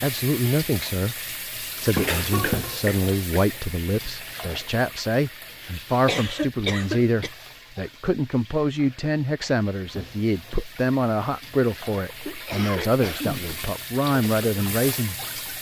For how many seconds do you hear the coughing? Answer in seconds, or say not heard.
5 s.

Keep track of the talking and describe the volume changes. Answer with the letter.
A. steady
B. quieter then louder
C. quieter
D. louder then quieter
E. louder
A.